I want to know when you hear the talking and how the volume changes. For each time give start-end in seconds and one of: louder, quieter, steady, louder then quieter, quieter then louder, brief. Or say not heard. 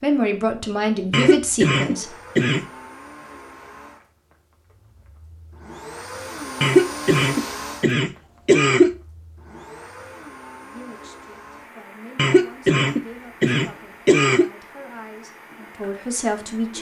0.0-2.1 brief
10.6-16.7 louder.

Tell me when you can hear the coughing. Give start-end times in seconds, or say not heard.
1.1-2.6, 6.6-8.9, 12.2-14.5.